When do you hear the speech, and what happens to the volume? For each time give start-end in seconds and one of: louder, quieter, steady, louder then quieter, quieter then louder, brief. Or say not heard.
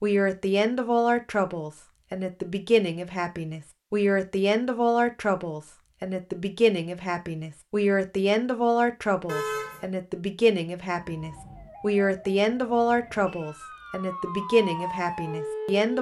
0.0-15.9 steady.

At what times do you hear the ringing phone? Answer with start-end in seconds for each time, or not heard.
not heard.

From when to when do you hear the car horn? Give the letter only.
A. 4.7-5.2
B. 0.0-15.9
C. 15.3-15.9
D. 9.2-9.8
D.